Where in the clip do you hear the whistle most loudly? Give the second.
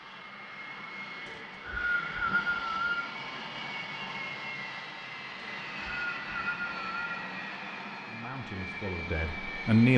2 s.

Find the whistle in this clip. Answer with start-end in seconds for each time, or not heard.
1.2-3.0, 5.3-7.2.